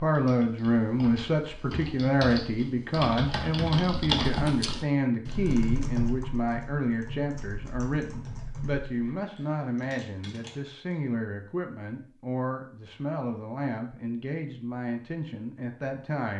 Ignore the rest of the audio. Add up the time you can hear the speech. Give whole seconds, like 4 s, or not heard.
16 s.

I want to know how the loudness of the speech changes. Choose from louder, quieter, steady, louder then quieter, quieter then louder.
quieter.